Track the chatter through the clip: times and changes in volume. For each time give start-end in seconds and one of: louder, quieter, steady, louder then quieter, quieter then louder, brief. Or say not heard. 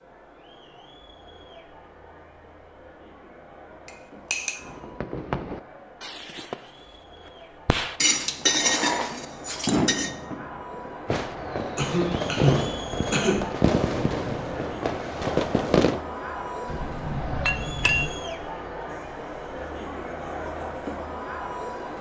0.0-21.9 louder.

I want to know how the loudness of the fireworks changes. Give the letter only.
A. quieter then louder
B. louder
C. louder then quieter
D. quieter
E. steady
B.